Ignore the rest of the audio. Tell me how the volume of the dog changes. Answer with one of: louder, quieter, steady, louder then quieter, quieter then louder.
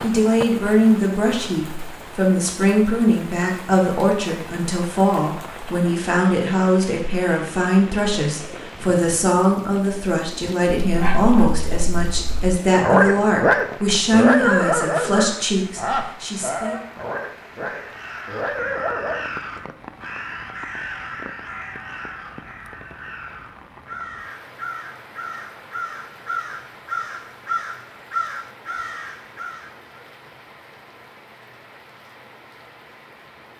louder then quieter.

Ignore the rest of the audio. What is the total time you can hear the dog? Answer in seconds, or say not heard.
9 s.